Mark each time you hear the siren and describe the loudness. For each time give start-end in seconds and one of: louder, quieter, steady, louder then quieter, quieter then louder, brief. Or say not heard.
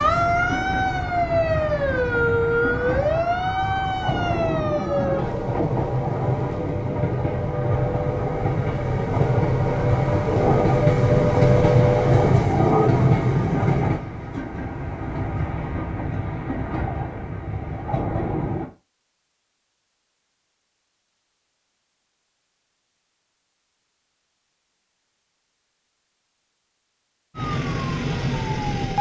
0.0-12.3 quieter then louder
27.4-28.9 brief.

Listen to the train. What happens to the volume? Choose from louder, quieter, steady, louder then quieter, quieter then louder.
louder then quieter.